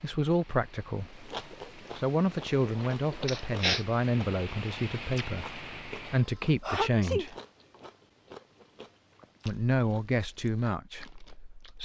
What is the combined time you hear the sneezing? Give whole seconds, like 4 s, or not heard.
2 s.